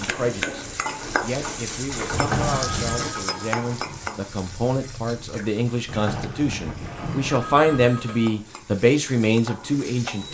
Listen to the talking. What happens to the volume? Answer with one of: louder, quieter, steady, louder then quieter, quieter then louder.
louder.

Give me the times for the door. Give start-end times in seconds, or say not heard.
2.1-3.0, 5.8-7.7.